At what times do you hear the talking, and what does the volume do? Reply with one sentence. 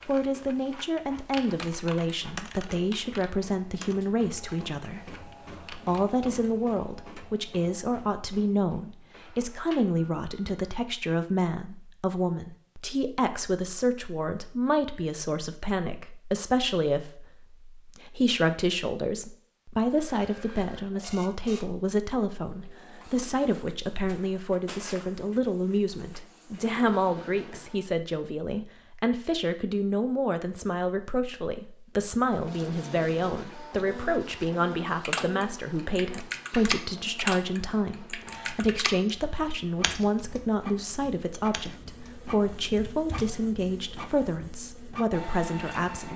You can hear the talking from 0.1 to 46.1 s, at a steady volume.